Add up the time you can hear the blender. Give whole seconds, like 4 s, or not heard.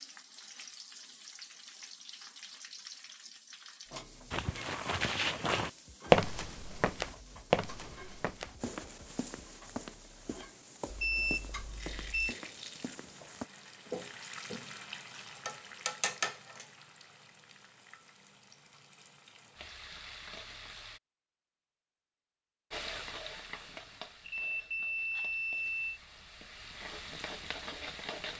not heard.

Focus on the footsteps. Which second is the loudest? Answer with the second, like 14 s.
6 s.